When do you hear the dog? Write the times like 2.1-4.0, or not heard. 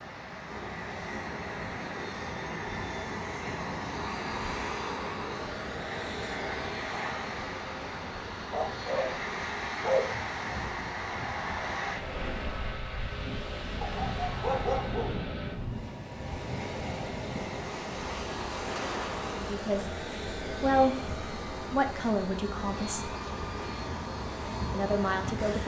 8.5-10.2, 13.8-15.2.